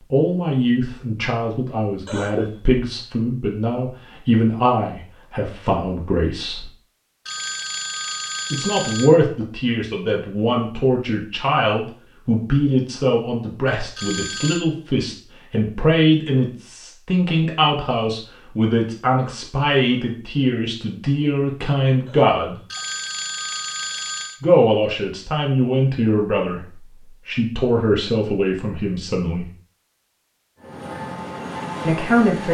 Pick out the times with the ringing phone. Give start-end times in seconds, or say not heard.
7.2-9.1, 13.9-14.6, 22.7-24.4.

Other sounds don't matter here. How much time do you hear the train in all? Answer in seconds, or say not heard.
2 s.